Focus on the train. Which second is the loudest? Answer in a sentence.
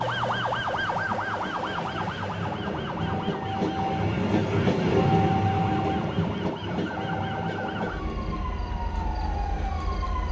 The volume of the train peaks at 5 seconds.